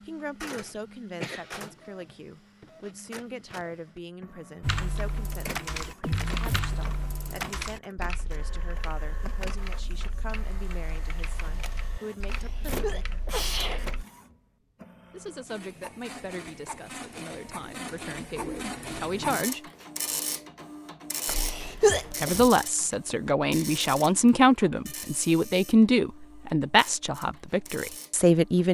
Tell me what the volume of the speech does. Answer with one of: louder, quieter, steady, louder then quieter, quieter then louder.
louder.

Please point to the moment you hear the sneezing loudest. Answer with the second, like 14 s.
22 s.